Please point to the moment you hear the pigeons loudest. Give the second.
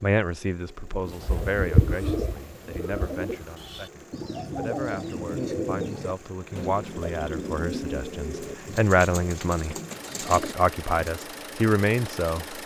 2 s.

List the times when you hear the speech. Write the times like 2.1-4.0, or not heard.
0.0-12.6.